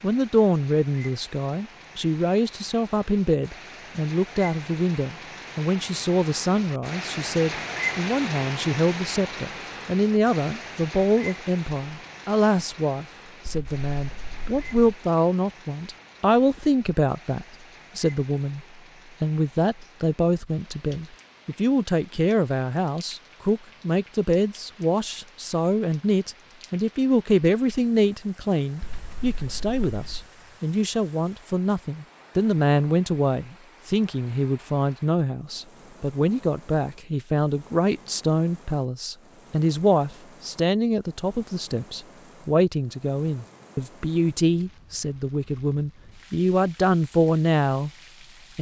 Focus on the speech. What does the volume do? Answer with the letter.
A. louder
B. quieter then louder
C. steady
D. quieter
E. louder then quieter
C.